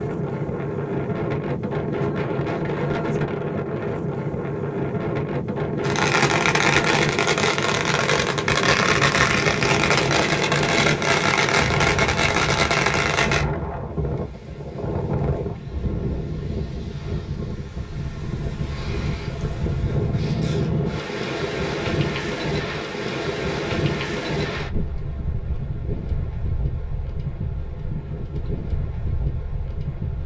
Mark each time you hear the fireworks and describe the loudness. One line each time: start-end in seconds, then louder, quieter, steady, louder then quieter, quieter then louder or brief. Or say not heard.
5.8-13.4 steady.